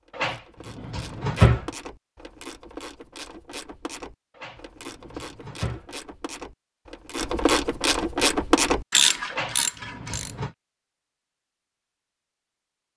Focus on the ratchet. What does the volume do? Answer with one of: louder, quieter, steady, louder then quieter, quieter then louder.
louder.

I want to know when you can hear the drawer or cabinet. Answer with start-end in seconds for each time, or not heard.
0.1-1.6, 4.3-5.8, 9.3-10.6.